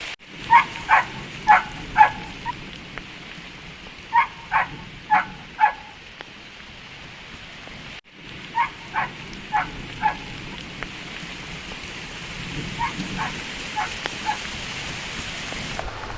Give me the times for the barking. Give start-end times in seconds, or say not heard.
0.5-2.5, 4.1-5.8, 8.6-10.6, 12.8-14.4.